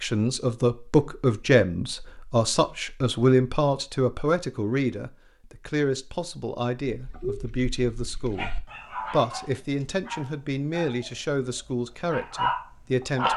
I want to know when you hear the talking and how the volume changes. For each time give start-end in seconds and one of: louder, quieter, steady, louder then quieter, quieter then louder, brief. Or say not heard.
0.0-13.3 quieter.